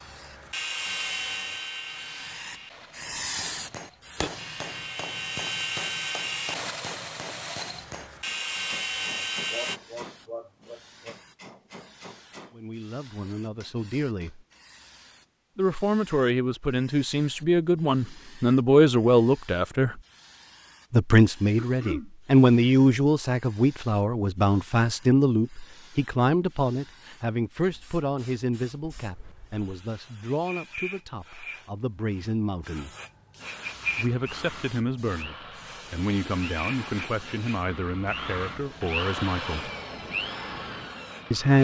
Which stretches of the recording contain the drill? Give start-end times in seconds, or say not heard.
0.0-9.8, 33.4-41.6.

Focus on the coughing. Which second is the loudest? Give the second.
22 s.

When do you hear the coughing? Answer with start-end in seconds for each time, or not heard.
9.5-11.2, 21.6-22.1, 28.8-29.7.